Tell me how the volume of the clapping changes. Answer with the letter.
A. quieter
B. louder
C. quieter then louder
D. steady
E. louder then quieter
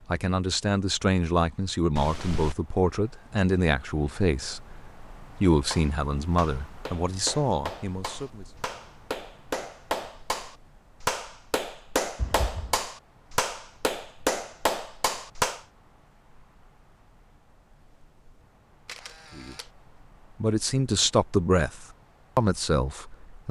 B.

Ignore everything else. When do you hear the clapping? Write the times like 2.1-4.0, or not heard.
5.5-15.6.